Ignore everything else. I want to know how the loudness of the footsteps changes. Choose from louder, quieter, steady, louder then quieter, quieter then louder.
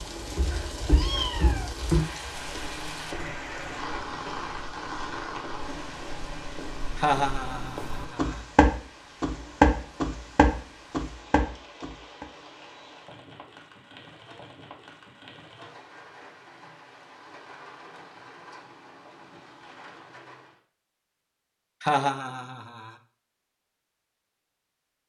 quieter then louder.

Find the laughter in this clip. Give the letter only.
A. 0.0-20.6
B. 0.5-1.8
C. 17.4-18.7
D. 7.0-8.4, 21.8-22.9
D.